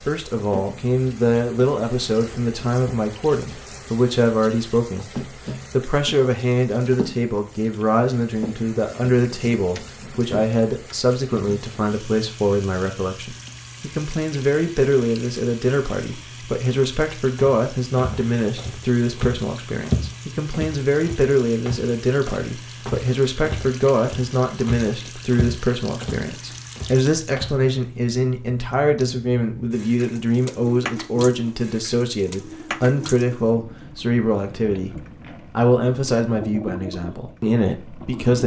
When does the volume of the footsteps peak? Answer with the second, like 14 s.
20 s.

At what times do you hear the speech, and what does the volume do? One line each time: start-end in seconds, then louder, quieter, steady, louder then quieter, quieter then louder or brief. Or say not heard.
0.1-38.4 steady.